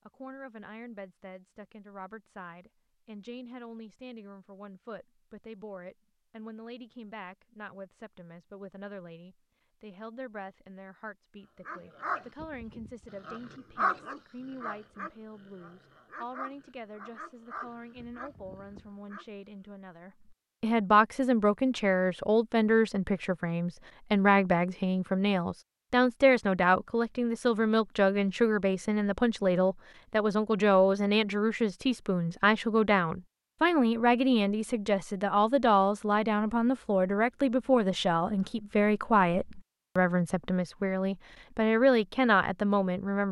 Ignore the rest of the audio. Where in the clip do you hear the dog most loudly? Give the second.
14 s.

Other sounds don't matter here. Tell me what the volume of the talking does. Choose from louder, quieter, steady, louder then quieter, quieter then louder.
louder.